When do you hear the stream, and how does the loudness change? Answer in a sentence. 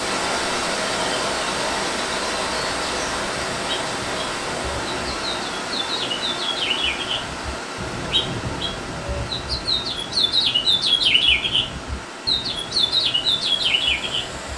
The stream can be heard from 0.0 to 14.5 s, getting quieter.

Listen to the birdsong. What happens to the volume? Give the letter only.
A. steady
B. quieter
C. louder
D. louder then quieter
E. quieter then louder
C.